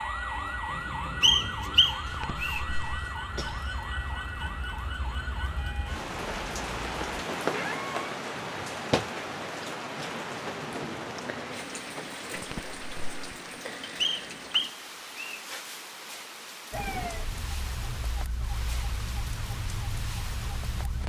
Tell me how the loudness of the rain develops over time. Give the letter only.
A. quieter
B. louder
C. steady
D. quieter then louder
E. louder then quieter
E.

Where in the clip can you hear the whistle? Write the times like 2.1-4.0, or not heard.
1.2-2.6, 14.0-15.4.